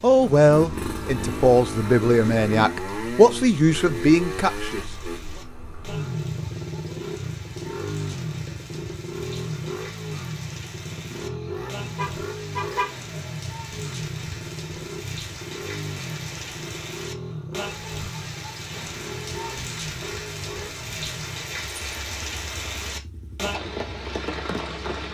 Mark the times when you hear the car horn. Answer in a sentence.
The car horn can be heard from 11.9 to 13.0 s.